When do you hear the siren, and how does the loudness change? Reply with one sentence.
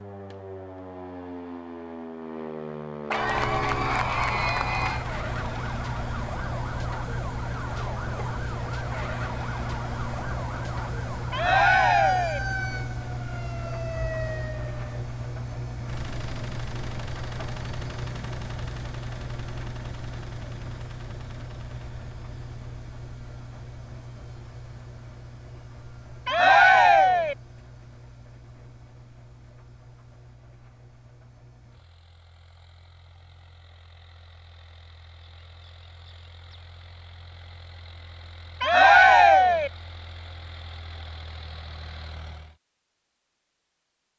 You can hear the siren from 0.0 to 15.1 s, at a steady volume.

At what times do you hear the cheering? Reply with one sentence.
You can hear the cheering from 3.1 to 5.0 s, from 11.3 to 12.4 s, from 26.2 to 27.4 s and from 38.6 to 39.7 s.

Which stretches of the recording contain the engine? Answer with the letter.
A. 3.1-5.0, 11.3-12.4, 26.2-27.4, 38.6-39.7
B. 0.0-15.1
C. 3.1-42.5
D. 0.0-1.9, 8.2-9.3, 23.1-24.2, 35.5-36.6
C.